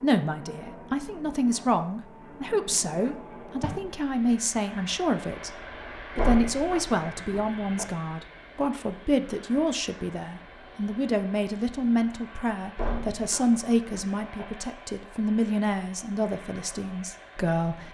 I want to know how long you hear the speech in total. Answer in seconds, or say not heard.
17 s.